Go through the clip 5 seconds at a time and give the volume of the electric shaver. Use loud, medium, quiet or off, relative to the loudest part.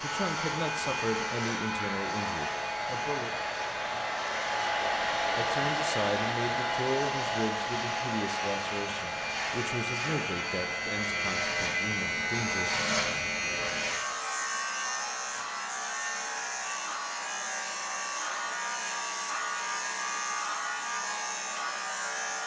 medium, medium, loud, loud, loud.